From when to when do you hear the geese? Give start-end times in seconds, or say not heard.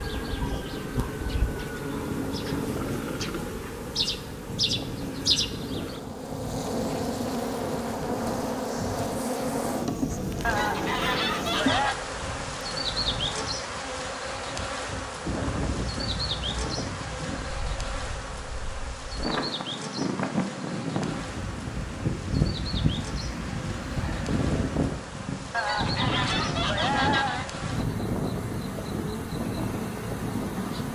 10.4-11.9, 25.5-27.5.